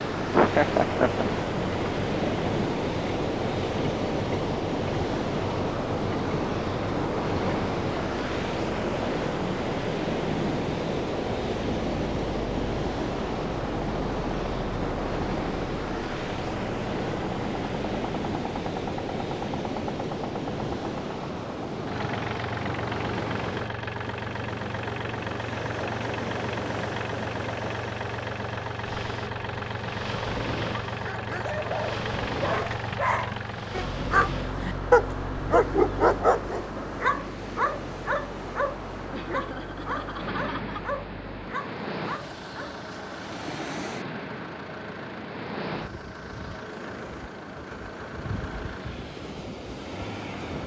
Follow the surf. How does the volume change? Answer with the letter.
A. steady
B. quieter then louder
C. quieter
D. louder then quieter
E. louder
C.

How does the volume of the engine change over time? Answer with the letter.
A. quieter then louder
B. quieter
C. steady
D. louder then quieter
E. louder
B.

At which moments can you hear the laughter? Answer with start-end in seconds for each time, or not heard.
0.3-1.2, 39.1-40.9.